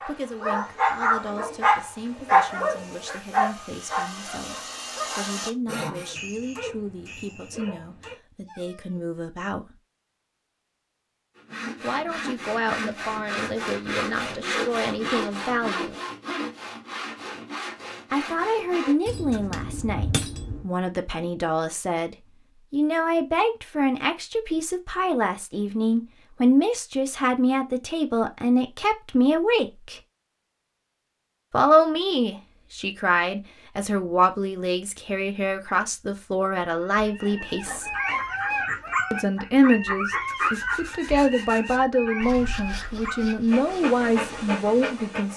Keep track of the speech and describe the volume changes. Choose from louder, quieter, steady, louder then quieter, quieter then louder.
louder.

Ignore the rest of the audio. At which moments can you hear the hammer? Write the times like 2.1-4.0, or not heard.
19.1-20.6.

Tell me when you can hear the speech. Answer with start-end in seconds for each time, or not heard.
0.0-9.8, 11.8-15.9, 18.1-30.0, 31.5-37.9, 39.1-45.3.